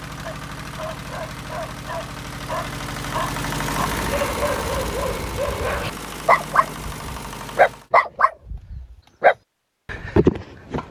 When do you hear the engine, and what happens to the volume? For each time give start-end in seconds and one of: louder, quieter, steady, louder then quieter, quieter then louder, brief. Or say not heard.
0.0-7.9 louder then quieter.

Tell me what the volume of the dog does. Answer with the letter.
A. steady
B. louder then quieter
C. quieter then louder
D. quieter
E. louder
E.